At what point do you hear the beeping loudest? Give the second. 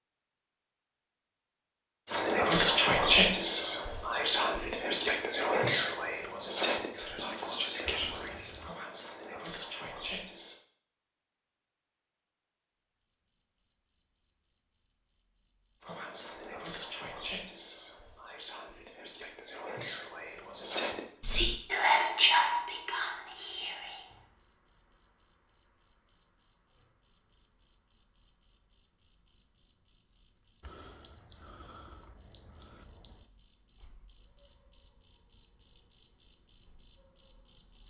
8 s.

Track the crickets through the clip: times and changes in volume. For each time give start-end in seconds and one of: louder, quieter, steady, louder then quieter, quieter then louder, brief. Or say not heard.
12.7-37.8 louder.